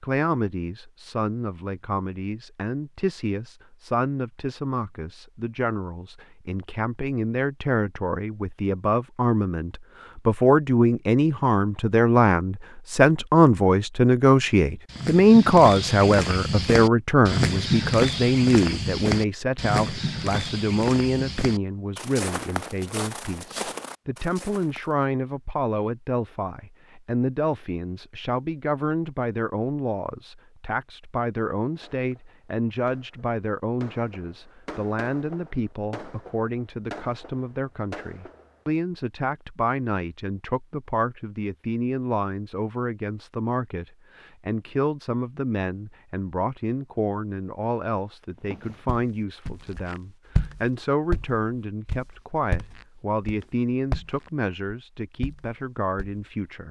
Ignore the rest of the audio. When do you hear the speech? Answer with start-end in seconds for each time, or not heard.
0.0-56.6.